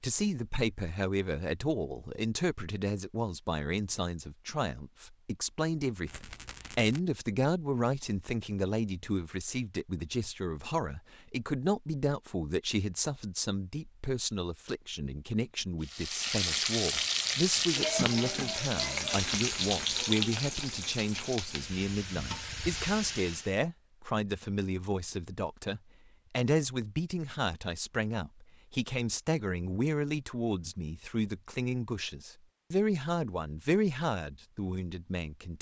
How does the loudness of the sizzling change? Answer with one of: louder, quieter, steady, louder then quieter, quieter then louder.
quieter.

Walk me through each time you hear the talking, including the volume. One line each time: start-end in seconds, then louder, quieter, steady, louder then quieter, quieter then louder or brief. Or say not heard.
0.0-35.5 steady.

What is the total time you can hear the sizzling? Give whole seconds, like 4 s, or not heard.
8 s.